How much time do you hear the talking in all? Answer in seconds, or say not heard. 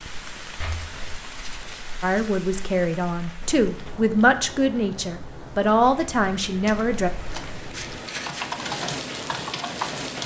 5 s.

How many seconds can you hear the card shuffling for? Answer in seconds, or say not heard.
3 s.